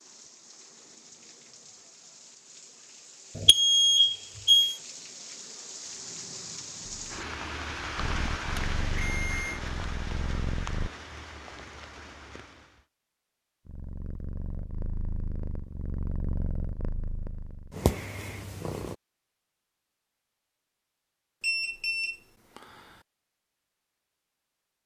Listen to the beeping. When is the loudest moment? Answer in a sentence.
The loudest moment of the beeping is at 4 seconds.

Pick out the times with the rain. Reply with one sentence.
You can hear the rain from 0.0 to 12.8 s.